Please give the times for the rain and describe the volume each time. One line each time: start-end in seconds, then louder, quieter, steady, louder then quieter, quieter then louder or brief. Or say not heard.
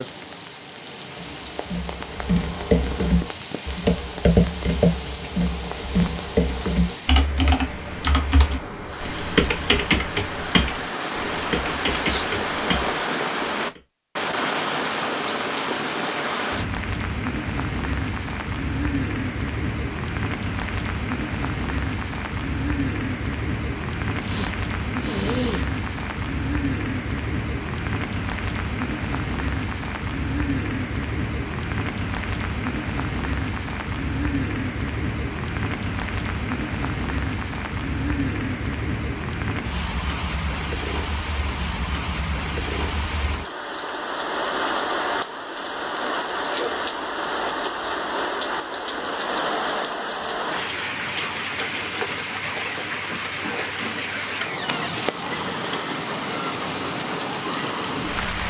0.0-58.4 louder.